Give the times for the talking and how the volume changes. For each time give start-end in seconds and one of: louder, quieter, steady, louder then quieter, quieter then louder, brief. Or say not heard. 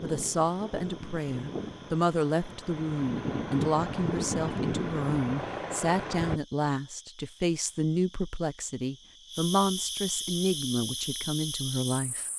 0.0-12.2 steady.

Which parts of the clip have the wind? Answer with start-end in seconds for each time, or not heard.
0.0-6.4.